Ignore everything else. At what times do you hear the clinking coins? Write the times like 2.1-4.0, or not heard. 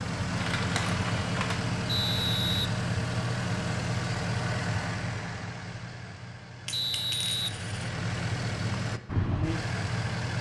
0.3-1.6, 6.7-7.9.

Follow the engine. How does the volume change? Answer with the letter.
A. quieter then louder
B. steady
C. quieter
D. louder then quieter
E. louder
A.